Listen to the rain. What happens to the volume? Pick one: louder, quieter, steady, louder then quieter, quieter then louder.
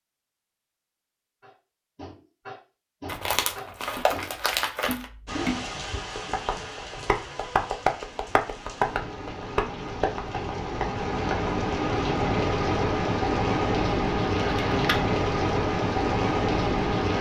louder.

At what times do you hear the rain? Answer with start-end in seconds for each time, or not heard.
5.2-17.1.